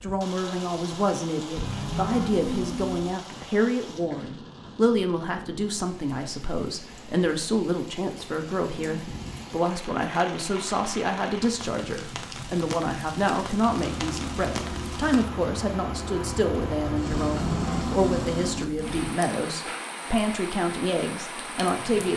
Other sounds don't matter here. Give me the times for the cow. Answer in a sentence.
You can hear the cow from 1.6 to 3.1 s and from 17.1 to 19.1 s.